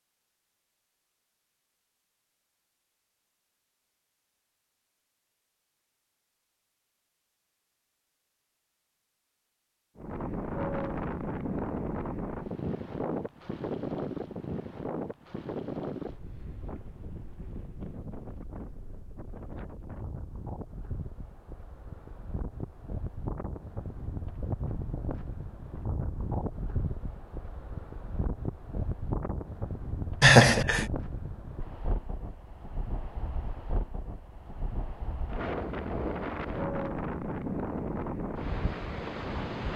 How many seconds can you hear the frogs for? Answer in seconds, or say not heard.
not heard.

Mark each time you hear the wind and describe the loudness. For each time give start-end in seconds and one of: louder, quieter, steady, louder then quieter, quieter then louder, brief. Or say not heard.
9.9-39.7 quieter then louder.